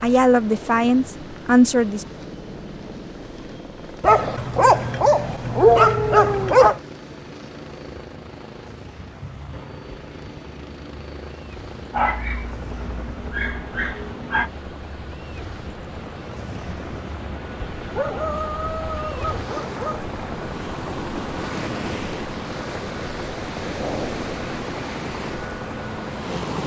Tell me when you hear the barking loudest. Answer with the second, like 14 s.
6 s.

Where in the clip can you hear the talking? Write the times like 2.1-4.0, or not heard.
0.0-2.0.